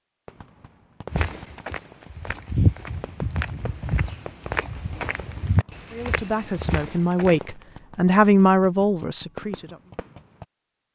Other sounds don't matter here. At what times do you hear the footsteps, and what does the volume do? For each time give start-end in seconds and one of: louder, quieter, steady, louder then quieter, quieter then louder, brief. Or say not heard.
1.1-7.5 louder then quieter.